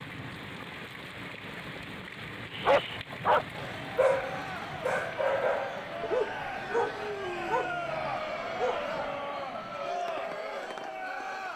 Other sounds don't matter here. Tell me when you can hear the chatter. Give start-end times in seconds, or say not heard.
3.5-11.5.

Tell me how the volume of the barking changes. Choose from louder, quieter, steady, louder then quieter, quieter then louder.
quieter.